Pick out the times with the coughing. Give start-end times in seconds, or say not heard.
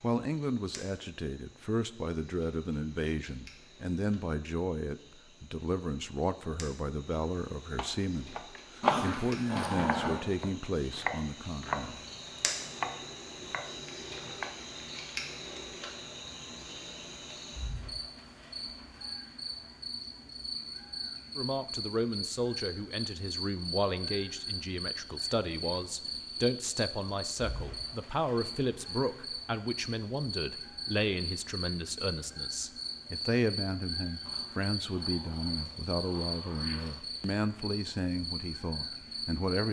not heard.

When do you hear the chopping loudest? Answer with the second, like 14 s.
9 s.